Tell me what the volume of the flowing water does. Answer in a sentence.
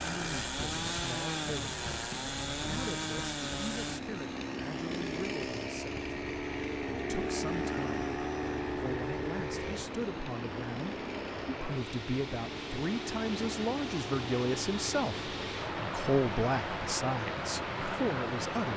The loudness of the flowing water goes up.